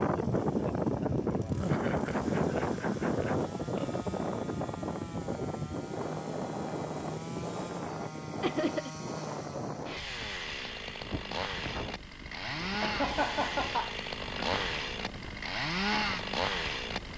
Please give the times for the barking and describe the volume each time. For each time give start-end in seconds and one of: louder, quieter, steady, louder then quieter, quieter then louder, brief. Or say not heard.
not heard.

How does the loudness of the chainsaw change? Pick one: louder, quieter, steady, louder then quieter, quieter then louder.
louder.